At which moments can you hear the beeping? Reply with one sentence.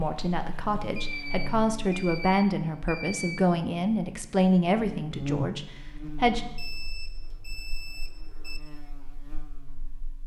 The beeping can be heard from 0.9 to 3.4 s and from 6.5 to 8.6 s.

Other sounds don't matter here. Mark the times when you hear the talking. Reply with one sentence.
The talking can be heard from 0.0 to 6.5 s.